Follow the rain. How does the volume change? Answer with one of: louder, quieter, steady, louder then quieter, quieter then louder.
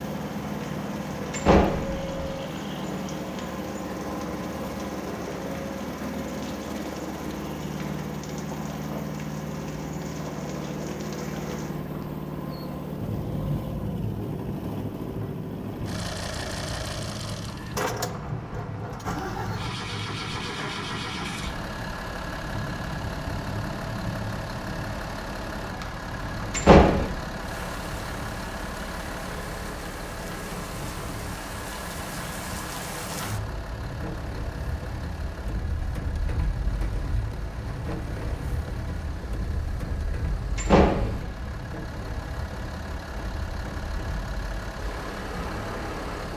steady.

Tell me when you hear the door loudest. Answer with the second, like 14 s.
27 s.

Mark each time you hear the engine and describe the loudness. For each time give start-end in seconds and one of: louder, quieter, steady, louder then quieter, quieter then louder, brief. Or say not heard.
0.0-46.3 quieter.